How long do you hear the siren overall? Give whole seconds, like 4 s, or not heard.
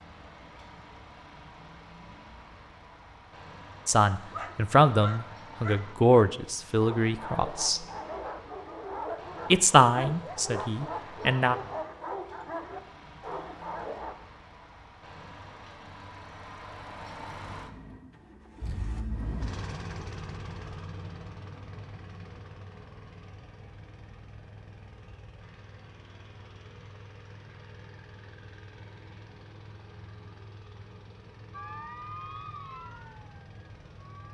3 s.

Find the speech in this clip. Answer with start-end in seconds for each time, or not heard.
3.9-7.8, 9.5-11.6.